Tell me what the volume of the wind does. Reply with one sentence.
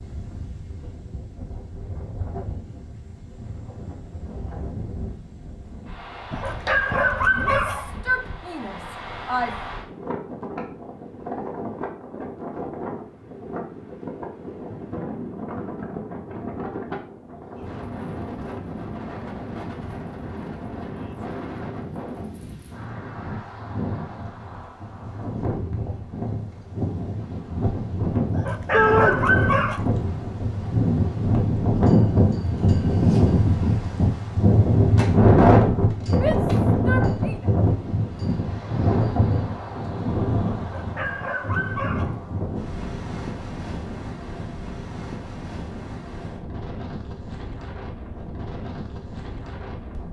The volume of the wind goes up, then down.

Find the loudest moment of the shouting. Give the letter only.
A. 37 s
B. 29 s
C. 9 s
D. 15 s
B.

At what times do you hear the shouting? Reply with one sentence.
You can hear the shouting from 7.3 to 9.6 s, from 28.7 to 29.1 s and from 36.1 to 37.5 s.